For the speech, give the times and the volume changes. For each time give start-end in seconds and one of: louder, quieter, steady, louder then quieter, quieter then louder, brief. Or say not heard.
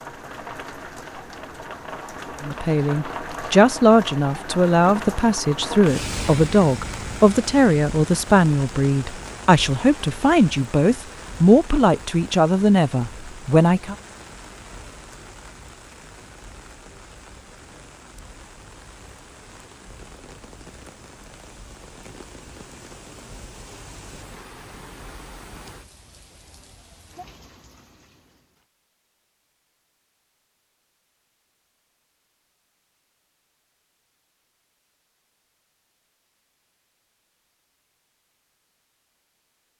2.4-13.9 steady.